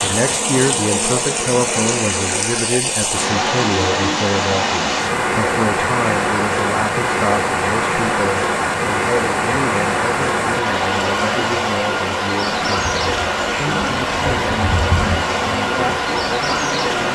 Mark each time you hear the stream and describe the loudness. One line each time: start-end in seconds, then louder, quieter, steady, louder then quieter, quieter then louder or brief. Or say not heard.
0.0-17.1 steady.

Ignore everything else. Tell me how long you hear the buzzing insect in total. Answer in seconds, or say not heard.
7 s.